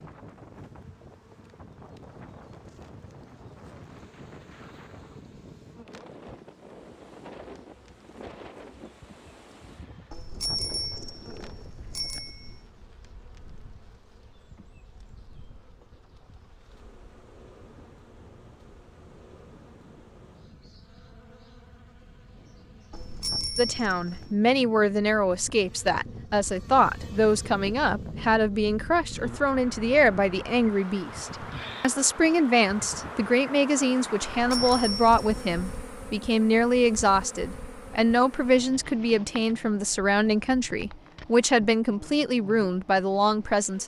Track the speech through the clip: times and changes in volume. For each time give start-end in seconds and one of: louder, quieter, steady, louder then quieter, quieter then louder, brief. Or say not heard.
23.6-43.8 steady.